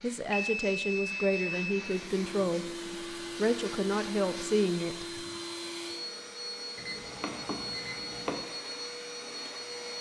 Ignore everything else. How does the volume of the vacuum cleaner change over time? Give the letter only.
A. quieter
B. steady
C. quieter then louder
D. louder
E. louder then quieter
B.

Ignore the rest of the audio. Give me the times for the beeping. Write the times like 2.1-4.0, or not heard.
0.3-1.8, 6.8-8.3.